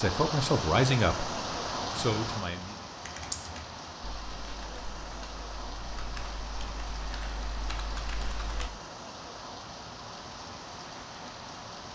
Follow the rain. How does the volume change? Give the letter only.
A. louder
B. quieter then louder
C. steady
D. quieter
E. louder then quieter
D.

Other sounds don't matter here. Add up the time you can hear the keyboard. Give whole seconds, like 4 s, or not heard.
6 s.